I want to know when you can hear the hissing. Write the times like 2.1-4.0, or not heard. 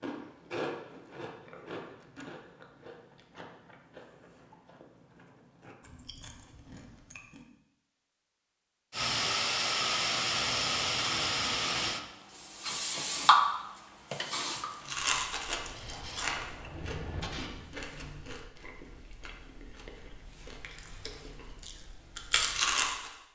8.9-17.6.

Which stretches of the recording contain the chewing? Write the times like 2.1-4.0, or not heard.
0.0-7.5, 14.7-23.1.